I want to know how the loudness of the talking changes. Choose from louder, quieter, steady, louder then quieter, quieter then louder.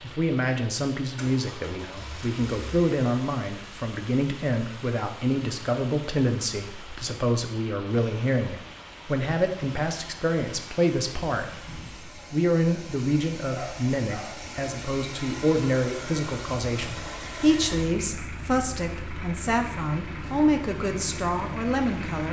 steady.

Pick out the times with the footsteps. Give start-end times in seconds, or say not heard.
not heard.